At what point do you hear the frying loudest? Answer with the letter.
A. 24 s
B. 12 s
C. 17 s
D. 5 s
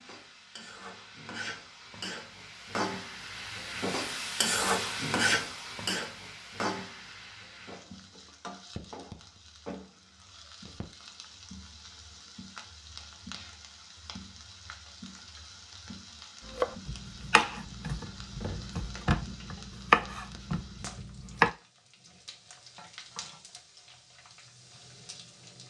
D.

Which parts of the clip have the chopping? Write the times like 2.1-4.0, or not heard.
16.4-21.5.